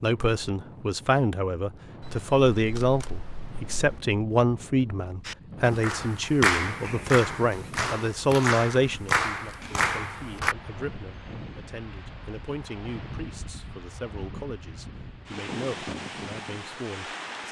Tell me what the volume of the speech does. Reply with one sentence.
The volume of the speech goes down.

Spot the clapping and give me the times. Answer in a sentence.
The clapping can be heard from 5.2 to 10.6 s.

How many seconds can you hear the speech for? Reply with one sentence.
The speech can be heard for 17 seconds in total.